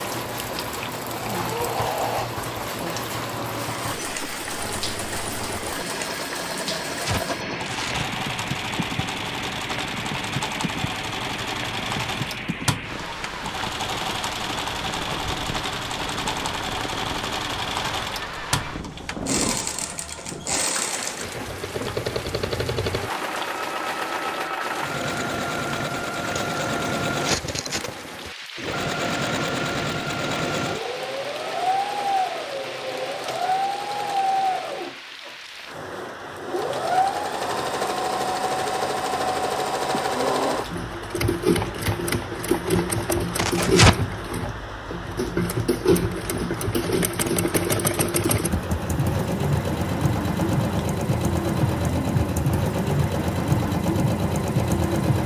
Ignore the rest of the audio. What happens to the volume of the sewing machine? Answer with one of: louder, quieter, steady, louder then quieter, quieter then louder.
louder.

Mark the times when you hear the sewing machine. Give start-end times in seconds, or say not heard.
0.0-55.2.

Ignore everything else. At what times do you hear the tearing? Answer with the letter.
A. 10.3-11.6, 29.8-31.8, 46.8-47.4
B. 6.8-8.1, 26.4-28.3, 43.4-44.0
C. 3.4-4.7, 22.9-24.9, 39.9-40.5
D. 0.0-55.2
B.